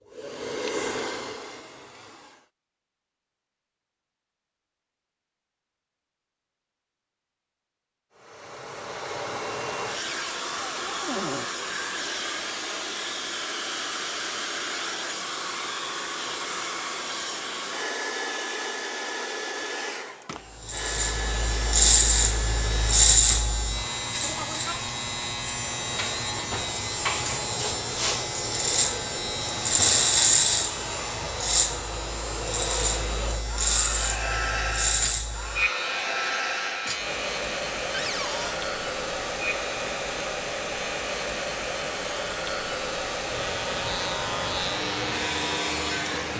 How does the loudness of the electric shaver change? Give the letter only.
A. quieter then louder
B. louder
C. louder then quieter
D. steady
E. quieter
E.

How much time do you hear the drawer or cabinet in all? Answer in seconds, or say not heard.
2 s.